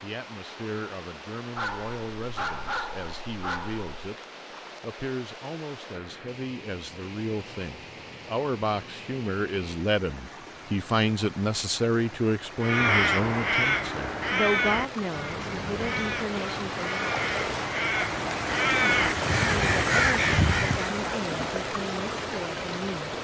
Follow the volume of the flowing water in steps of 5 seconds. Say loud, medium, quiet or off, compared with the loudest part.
quiet, quiet, medium, loud, loud.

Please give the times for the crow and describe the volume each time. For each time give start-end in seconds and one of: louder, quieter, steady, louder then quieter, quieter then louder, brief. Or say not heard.
12.6-20.9 quieter then louder.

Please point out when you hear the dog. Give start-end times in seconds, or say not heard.
1.6-4.0.